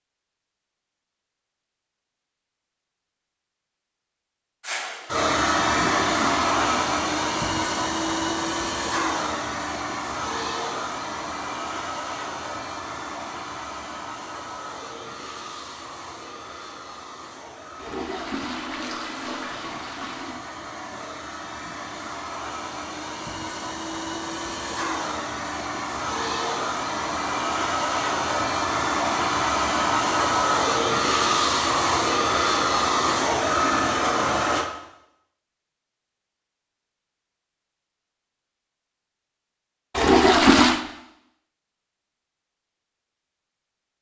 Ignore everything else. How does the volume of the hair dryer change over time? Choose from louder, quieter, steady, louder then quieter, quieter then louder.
quieter then louder.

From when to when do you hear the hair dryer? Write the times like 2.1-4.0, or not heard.
4.6-34.7.